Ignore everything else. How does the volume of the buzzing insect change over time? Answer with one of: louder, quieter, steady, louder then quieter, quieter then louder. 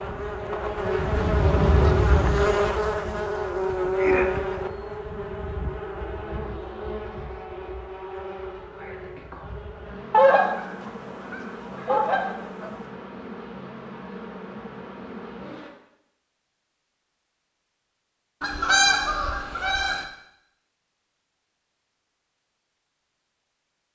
quieter.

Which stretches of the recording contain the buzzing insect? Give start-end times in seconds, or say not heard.
0.0-15.7.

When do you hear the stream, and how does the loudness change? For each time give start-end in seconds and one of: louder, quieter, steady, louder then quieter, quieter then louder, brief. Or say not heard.
not heard.